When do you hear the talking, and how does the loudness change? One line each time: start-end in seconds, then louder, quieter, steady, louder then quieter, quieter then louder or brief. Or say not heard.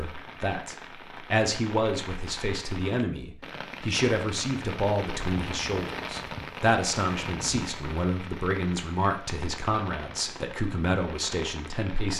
0.0-12.1 steady.